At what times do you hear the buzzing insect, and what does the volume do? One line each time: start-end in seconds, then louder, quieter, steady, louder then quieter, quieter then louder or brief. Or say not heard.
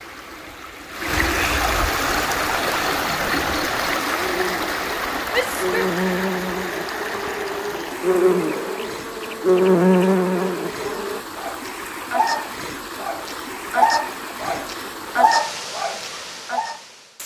2.0-11.2 louder.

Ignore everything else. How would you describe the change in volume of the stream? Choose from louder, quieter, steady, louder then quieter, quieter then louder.
quieter.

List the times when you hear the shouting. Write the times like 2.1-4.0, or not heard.
5.3-6.0.